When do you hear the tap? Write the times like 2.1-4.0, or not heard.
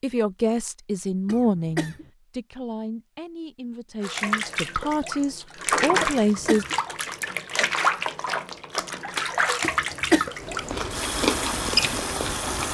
4.0-12.6.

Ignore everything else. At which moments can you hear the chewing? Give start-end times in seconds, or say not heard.
10.3-12.6.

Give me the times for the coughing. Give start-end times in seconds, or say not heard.
1.2-2.0, 6.0-6.8, 9.6-10.3.